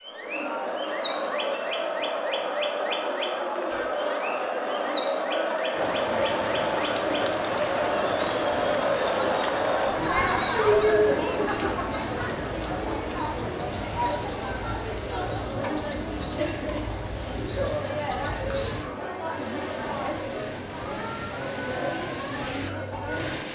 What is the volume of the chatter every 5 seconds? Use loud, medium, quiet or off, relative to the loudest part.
loud, loud, loud, medium, medium.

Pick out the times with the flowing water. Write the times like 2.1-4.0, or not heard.
5.7-23.4.